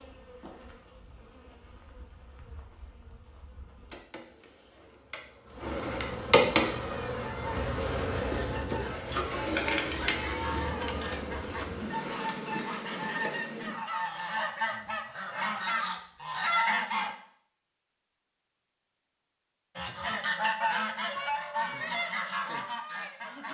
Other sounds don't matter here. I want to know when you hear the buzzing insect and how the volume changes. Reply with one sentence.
You can hear the buzzing insect from 0.0 to 13.8 s, getting louder then quieter.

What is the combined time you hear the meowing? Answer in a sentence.
You can hear the meowing for 2 seconds altogether.